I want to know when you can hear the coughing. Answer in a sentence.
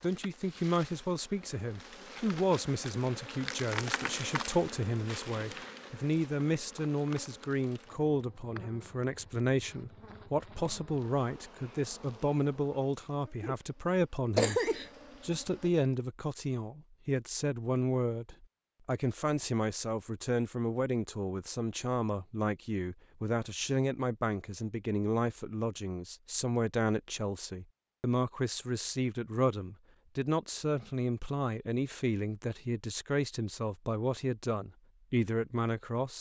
The coughing can be heard from 14.3 to 14.9 s.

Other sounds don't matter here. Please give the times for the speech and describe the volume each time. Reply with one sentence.
You can hear the speech from 0.0 to 36.1 s, at a steady volume.